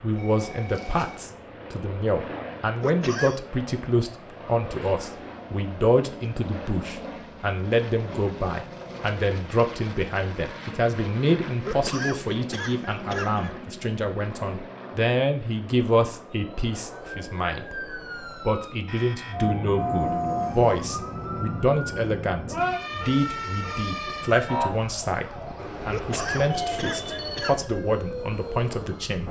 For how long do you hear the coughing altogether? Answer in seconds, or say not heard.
4 s.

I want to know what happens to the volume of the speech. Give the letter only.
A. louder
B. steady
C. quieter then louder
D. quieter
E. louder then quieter
B.